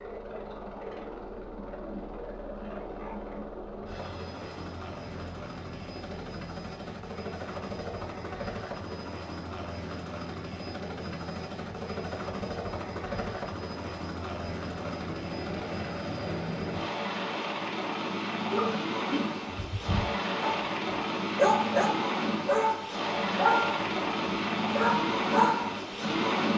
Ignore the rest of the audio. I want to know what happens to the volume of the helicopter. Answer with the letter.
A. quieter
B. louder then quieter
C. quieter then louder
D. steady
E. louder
E.